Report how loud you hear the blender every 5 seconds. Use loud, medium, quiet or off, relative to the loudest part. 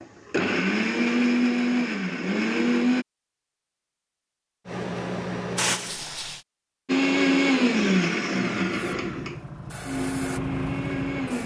loud, loud, medium.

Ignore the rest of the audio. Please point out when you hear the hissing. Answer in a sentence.
You can hear the hissing from 4.7 to 6.5 s and from 8.7 to 11.4 s.